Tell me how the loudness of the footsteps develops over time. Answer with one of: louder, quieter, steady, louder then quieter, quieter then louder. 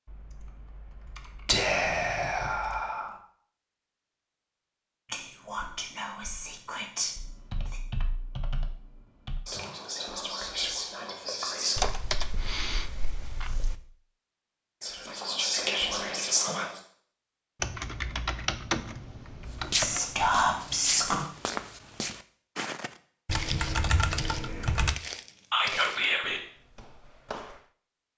quieter.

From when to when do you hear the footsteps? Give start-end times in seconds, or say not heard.
19.6-27.7.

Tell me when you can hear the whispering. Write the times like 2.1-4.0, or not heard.
1.4-3.1, 5.1-7.8, 9.4-11.9, 14.8-16.8, 19.8-21.2, 25.5-26.4.